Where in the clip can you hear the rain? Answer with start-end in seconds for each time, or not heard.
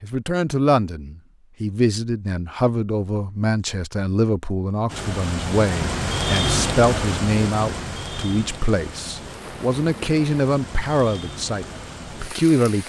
4.8-12.8.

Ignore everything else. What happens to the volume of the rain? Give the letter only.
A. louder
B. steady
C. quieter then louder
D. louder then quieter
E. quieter
E.